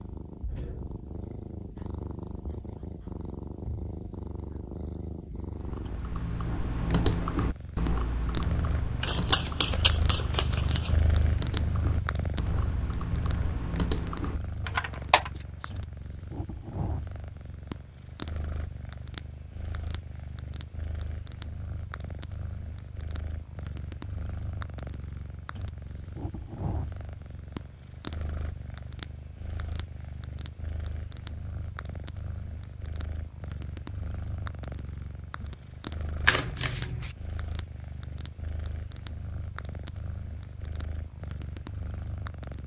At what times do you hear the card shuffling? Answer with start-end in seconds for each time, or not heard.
9.0-10.9, 15.1-15.7, 36.2-37.1.